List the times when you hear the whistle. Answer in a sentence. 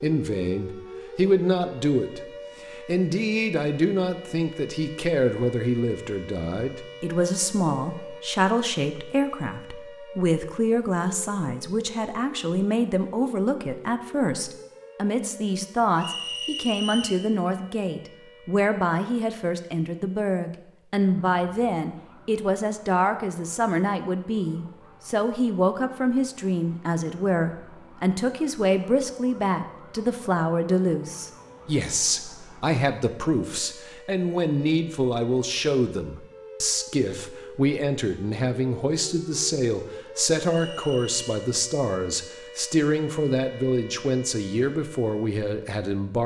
You can hear the whistle from 15.9 to 17.2 s and from 40.5 to 41.2 s.